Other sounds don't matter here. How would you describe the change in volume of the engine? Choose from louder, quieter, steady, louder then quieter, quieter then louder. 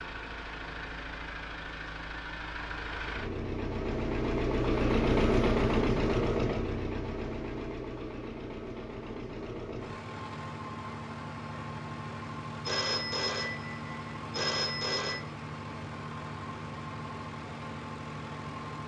louder then quieter.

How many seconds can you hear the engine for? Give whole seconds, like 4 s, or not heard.
19 s.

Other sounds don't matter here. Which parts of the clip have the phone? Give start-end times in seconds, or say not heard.
12.7-15.2.